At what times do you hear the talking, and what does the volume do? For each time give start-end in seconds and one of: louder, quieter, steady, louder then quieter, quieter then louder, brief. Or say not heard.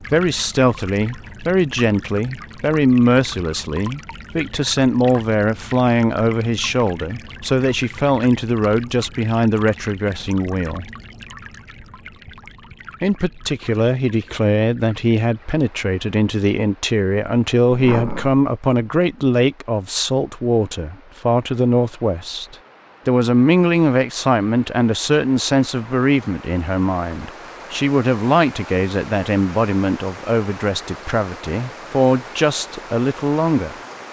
0.0-10.8 steady
13.0-33.8 steady.